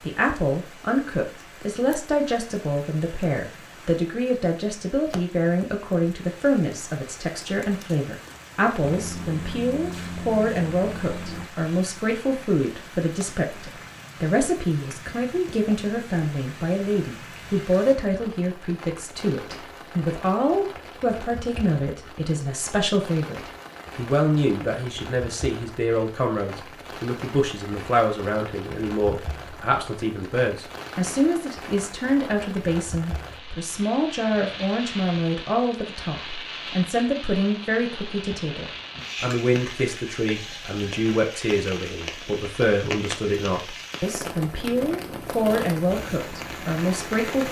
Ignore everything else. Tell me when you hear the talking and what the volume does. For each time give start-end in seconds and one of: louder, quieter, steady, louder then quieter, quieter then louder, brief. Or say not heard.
0.1-47.4 steady.